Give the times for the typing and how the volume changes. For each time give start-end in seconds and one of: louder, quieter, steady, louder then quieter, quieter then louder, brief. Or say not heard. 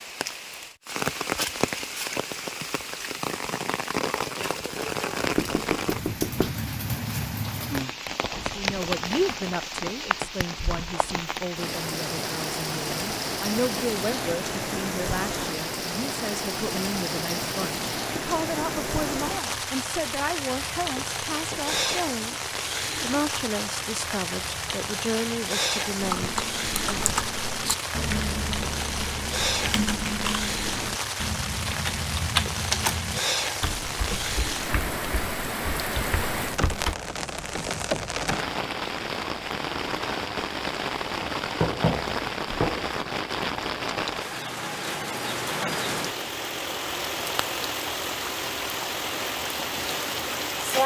26.0-37.0 quieter.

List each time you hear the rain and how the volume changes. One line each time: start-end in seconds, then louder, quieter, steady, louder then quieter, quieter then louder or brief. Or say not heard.
0.0-50.8 steady.